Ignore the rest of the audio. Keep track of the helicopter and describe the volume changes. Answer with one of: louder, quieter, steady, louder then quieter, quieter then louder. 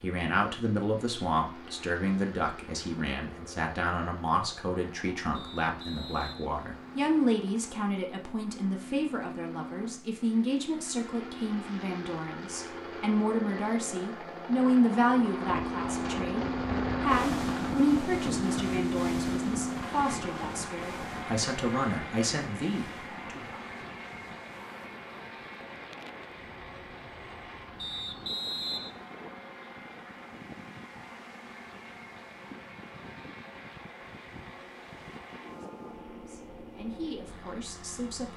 louder then quieter.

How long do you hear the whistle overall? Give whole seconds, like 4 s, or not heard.
3 s.